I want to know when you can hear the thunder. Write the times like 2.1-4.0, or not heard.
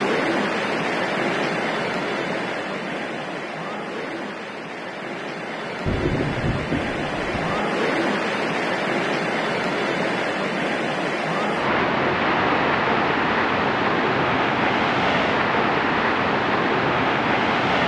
5.8-7.6.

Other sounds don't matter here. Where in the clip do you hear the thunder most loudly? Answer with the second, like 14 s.
6 s.